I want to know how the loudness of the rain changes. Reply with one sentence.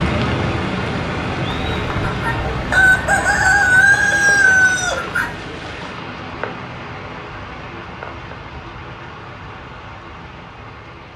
The loudness of the rain goes down.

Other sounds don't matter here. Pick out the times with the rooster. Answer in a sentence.
You can hear the rooster from 1.5 to 5.3 s.